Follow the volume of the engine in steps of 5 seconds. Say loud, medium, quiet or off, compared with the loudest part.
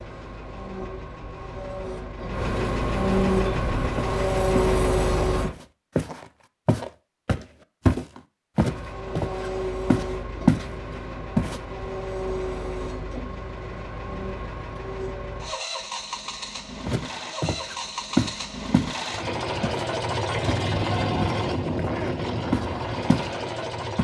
loud, loud, medium, medium, loud.